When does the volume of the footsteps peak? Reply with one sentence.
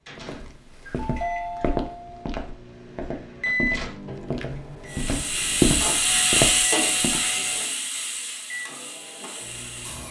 The volume of the footsteps peaks at 6 seconds.